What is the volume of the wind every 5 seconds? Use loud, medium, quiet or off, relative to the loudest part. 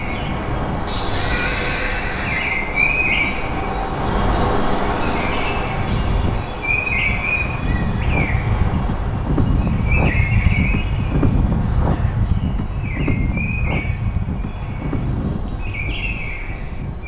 medium, loud, loud, medium.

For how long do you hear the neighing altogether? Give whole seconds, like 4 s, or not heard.
2 s.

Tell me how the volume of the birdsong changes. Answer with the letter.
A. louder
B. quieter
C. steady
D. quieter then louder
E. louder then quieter
B.